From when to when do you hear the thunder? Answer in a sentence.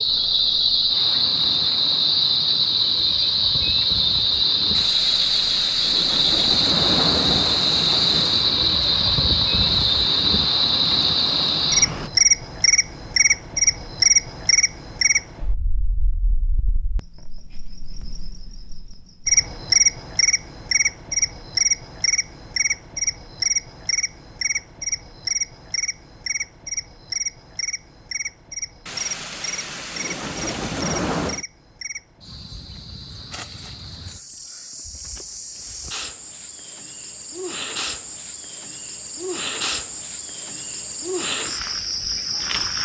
You can hear the thunder from 4.7 to 8.5 s and from 28.9 to 31.4 s.